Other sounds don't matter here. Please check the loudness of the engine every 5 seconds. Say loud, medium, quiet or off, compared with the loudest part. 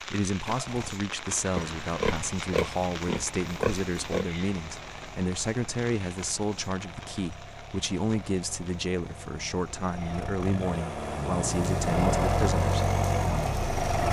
quiet, quiet, loud.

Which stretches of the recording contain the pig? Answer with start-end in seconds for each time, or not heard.
1.6-4.2.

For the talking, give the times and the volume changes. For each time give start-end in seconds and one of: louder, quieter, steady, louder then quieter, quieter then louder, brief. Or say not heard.
0.0-12.8 steady.